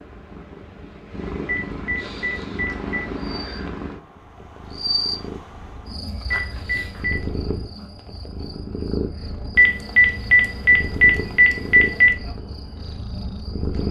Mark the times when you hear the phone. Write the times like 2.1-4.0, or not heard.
1.4-2.9, 6.3-7.2, 9.6-12.2.